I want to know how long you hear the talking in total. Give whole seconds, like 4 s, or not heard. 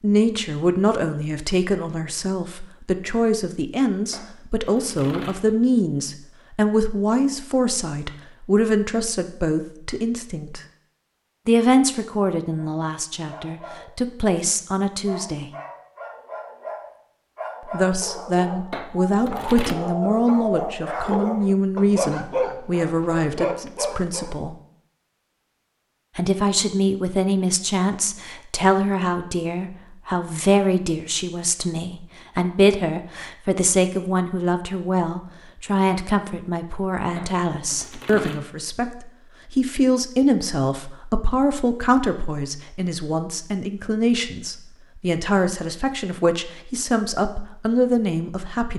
44 s.